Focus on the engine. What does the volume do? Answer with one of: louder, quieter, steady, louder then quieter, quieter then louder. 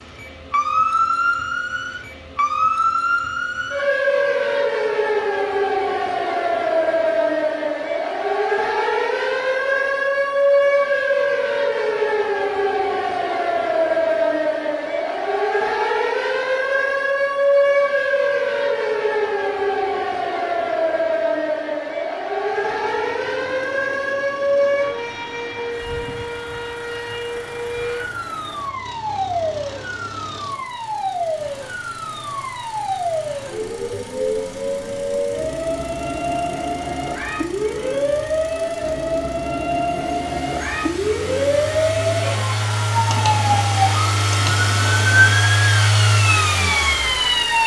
louder.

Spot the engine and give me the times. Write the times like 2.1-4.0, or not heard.
22.4-47.6.